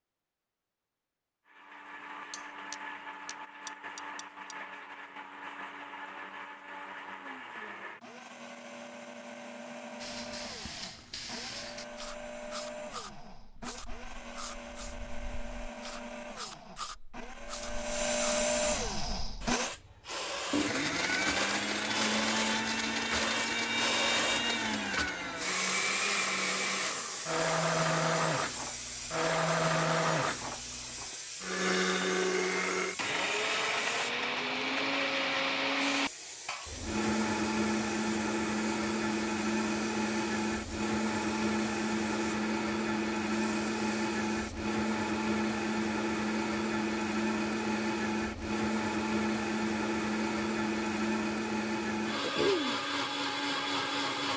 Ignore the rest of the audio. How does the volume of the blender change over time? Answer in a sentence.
The volume of the blender goes up.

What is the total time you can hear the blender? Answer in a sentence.
The blender can be heard for 53 seconds in total.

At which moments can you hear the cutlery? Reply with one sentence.
You can hear the cutlery from 2.3 to 4.5 s.